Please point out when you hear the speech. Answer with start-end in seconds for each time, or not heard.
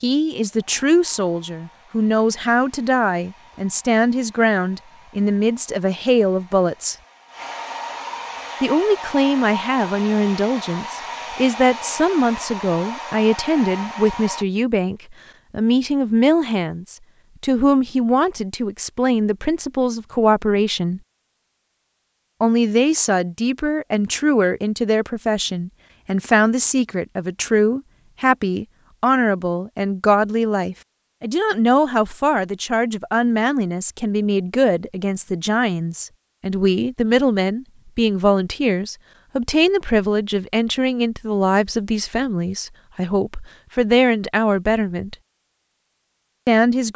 0.0-7.0, 8.6-21.0, 22.4-45.1, 46.5-46.9.